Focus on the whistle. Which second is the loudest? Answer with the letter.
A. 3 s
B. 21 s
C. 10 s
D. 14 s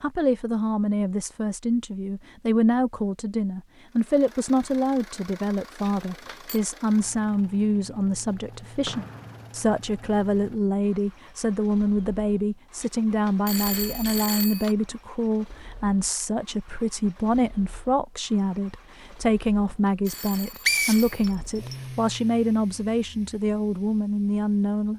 B.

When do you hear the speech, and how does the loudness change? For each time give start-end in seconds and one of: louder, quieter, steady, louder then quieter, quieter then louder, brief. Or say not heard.
0.0-24.9 steady.